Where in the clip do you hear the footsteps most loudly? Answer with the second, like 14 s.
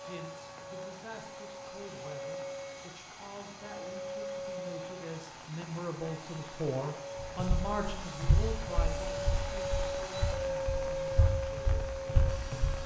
8 s.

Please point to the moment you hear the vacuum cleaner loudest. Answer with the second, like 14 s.
11 s.